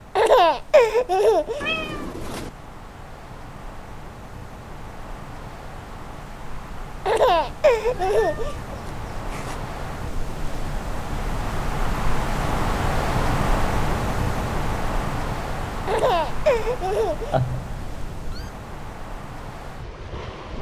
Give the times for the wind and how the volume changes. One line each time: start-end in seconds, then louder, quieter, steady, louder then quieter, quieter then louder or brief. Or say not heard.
0.0-20.5 louder then quieter.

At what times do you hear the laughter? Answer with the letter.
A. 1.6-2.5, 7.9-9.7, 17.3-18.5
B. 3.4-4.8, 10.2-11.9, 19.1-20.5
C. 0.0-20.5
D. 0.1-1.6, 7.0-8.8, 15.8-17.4
D.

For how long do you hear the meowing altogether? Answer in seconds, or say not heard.
4 s.